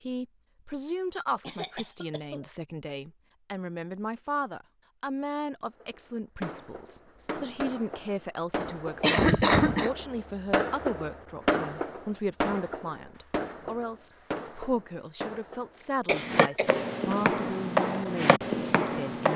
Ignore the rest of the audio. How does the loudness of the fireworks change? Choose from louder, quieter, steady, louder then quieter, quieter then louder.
louder then quieter.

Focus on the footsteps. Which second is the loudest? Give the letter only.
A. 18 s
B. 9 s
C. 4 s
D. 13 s
A.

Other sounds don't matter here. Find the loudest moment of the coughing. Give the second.
9 s.